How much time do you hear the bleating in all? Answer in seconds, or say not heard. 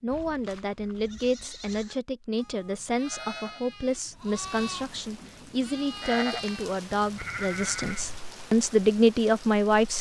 8 s.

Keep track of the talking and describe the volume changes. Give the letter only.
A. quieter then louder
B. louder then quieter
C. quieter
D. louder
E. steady
D.